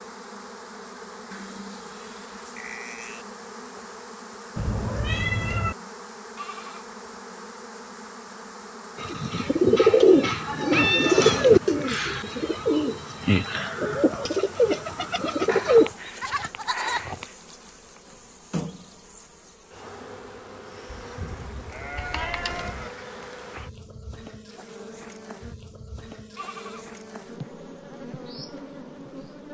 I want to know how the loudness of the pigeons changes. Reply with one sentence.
The loudness of the pigeons goes down.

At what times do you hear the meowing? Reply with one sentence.
You can hear the meowing from 4.5 to 5.8 s, from 10.7 to 11.9 s and from 21.9 to 22.8 s.